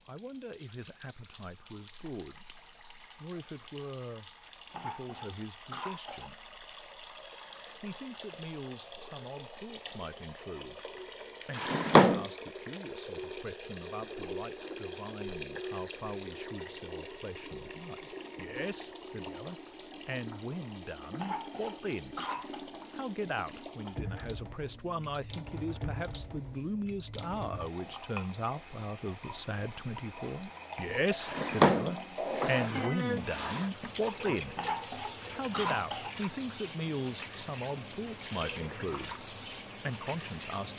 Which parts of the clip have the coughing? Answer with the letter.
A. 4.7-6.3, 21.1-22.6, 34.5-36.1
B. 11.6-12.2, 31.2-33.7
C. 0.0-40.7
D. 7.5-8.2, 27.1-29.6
A.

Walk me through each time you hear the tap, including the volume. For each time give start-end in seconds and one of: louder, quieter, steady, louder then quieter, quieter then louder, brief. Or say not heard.
0.0-40.7 louder.